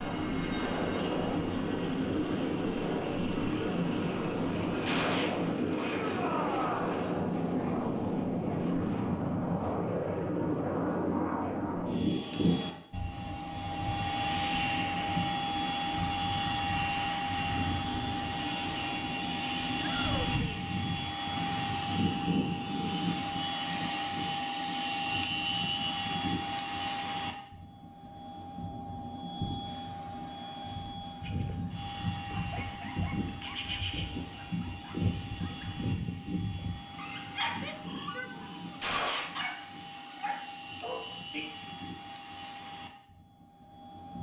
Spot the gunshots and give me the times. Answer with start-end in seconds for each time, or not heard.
4.8-5.3, 38.8-39.3.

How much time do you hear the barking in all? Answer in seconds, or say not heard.
10 s.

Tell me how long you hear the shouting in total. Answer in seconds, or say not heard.
3 s.